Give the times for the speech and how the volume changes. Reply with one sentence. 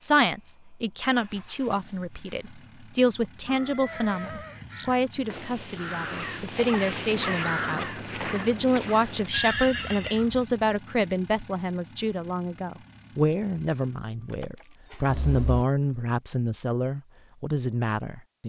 The speech can be heard from 0.0 to 18.4 s, at a steady volume.